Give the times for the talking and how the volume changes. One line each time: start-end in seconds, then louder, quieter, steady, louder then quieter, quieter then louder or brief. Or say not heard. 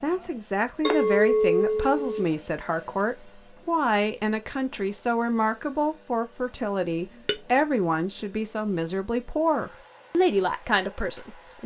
0.0-11.6 steady.